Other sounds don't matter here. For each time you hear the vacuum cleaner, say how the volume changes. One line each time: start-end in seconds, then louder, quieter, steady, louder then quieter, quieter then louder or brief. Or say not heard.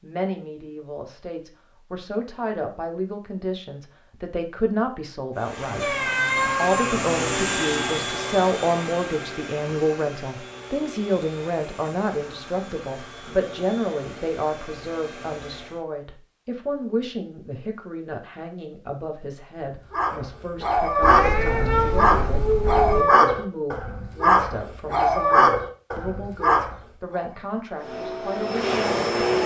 5.3-15.8 quieter
27.8-29.4 brief.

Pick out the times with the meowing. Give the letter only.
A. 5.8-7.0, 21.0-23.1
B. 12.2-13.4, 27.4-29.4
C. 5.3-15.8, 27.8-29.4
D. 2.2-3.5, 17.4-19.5
A.